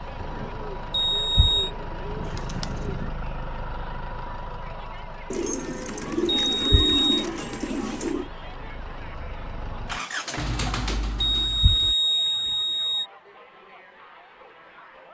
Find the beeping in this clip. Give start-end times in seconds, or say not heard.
0.9-1.7, 6.5-7.2, 11.2-13.1.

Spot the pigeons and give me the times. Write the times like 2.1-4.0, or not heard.
0.2-3.1, 5.3-8.3, 10.3-11.9.